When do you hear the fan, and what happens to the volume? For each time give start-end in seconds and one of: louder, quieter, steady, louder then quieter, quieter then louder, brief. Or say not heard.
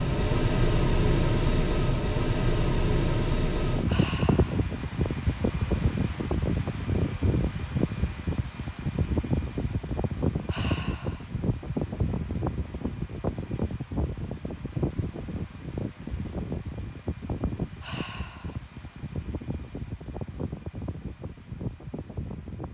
0.0-22.6 quieter.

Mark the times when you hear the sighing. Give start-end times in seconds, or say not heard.
3.9-4.7, 10.4-11.3, 17.8-18.6.